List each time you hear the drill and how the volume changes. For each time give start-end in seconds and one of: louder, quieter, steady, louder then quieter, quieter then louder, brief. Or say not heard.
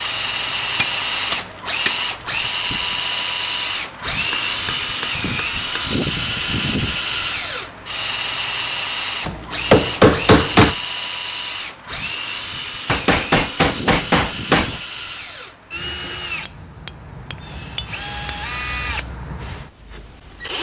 0.0-20.5 quieter.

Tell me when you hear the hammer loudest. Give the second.
10 s.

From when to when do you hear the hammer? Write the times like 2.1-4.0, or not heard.
0.3-2.0, 4.3-5.9, 9.2-10.8, 12.8-14.8, 16.4-18.4.